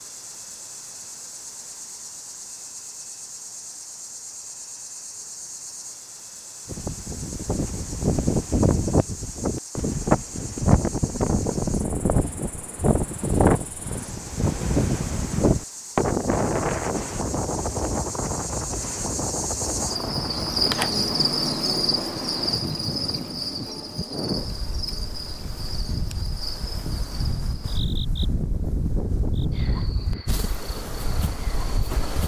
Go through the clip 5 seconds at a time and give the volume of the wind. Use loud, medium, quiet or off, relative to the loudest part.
off, loud, loud, loud, medium, medium, medium.